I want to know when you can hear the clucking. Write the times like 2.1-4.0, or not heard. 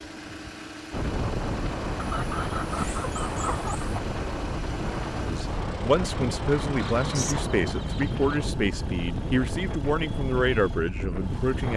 1.9-4.0, 7.0-8.4.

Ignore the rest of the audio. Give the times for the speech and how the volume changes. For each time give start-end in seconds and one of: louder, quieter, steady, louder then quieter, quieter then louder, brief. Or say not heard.
5.2-11.7 steady.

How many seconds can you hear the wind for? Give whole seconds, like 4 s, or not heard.
12 s.